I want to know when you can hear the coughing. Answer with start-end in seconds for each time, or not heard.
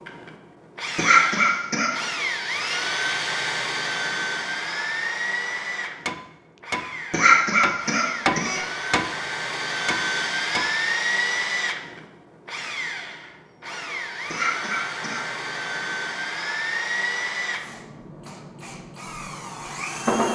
0.9-1.9, 7.1-8.6, 14.3-15.2.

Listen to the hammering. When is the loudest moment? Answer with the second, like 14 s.
8 s.